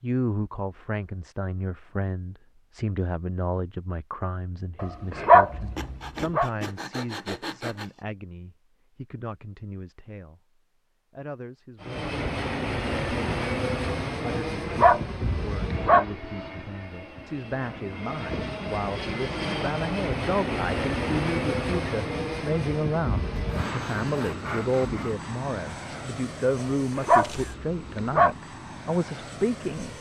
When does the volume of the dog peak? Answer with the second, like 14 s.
5 s.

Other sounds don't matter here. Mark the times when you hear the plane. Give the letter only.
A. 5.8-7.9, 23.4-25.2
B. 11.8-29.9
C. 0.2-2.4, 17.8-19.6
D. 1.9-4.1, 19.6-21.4
B.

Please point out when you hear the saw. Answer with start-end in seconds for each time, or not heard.
5.8-7.9, 23.4-25.2.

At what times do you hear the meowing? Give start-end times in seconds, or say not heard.
not heard.